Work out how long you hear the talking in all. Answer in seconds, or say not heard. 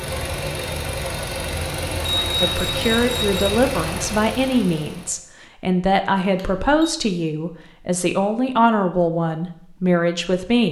8 s.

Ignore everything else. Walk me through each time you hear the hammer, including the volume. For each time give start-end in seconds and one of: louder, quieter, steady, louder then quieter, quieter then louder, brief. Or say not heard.
not heard.